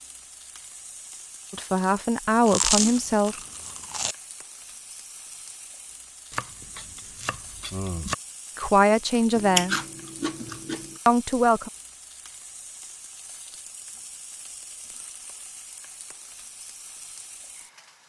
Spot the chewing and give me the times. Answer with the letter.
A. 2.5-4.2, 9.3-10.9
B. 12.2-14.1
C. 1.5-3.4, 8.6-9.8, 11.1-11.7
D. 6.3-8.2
A.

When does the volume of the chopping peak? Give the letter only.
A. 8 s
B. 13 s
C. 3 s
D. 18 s
A.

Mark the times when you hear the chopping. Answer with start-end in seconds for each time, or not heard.
6.3-8.2.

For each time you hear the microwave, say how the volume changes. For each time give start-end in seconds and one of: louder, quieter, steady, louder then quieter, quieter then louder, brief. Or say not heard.
not heard.